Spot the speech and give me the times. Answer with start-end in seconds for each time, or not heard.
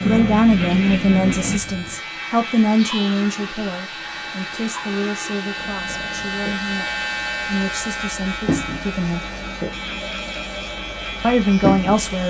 0.0-9.3, 11.2-12.2.